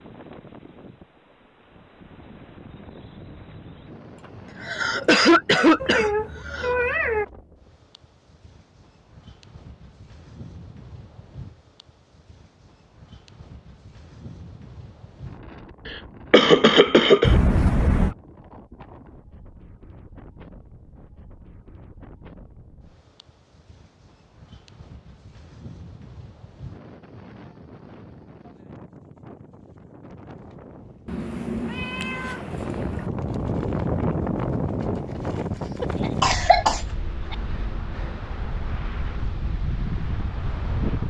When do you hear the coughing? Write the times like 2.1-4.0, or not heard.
4.2-6.8, 16.3-17.4, 35.8-37.4.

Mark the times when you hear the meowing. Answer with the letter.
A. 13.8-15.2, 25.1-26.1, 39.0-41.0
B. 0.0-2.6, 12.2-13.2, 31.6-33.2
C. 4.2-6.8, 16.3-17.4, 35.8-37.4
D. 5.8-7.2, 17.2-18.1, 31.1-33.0
D.